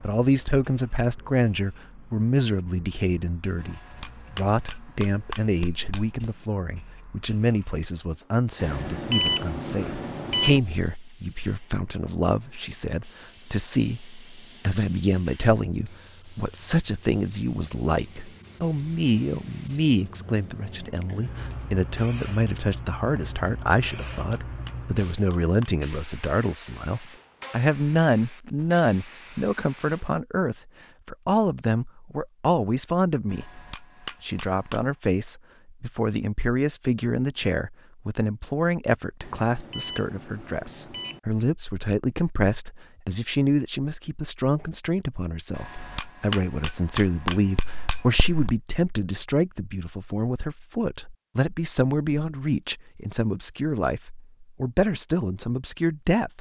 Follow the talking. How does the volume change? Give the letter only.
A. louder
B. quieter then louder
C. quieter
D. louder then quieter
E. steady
E.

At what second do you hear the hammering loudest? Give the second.
47 s.